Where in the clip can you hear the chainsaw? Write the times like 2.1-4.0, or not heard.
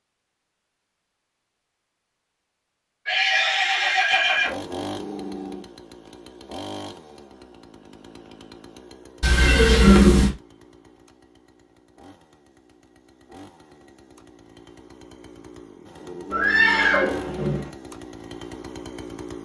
4.2-19.4.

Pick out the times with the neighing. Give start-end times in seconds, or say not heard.
3.0-4.6, 9.2-10.3, 16.3-17.7.